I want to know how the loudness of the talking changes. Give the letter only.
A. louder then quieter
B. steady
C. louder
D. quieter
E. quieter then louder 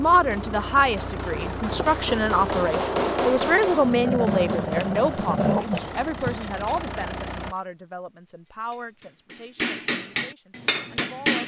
D.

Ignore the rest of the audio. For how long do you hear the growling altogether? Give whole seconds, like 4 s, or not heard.
3 s.